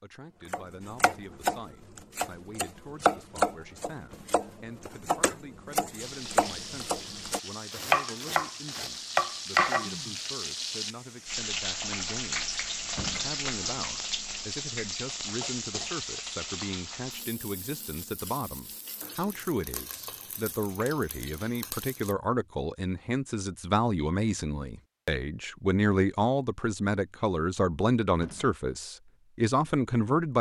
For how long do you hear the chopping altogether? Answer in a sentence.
You can hear the chopping for 10 seconds altogether.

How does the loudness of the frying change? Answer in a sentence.
The volume of the frying goes up, then down.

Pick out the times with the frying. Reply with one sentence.
You can hear the frying from 6.0 to 22.1 s.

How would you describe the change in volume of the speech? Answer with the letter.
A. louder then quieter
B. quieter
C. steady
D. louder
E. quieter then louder
D.